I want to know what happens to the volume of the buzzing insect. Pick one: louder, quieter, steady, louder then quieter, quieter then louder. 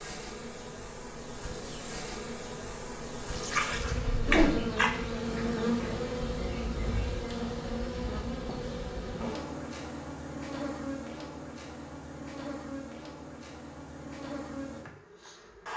louder then quieter.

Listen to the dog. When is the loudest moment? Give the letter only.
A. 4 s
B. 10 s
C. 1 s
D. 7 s
A.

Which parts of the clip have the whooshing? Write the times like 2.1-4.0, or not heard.
4.1-4.6.